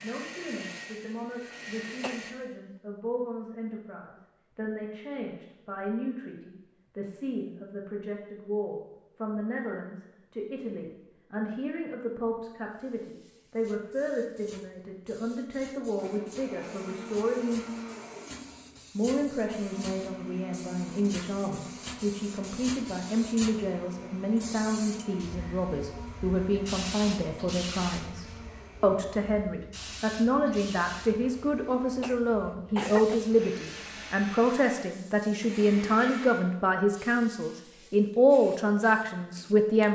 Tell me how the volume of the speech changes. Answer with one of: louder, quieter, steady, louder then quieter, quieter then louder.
louder.